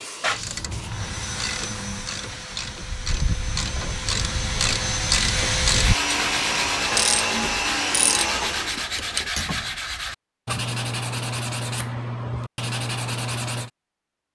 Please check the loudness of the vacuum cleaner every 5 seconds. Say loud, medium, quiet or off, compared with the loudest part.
medium, loud, off.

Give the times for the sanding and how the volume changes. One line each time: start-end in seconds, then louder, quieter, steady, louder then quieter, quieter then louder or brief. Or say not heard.
5.8-13.7 steady.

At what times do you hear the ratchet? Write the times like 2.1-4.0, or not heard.
0.3-9.7.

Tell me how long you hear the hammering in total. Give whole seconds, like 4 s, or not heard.
not heard.